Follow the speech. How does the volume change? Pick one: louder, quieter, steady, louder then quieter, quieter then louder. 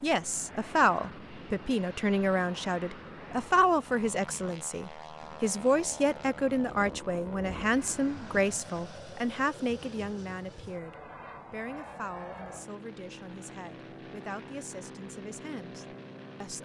quieter.